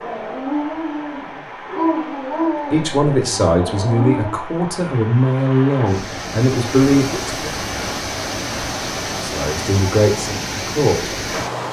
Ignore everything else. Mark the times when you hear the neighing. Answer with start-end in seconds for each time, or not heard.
not heard.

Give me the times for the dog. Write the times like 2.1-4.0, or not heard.
0.0-4.4.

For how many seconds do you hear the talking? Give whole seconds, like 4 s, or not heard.
7 s.